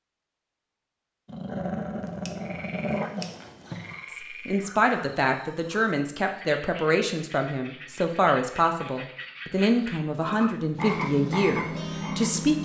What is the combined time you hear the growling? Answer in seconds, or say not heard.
3 s.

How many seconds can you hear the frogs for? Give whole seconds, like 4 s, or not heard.
10 s.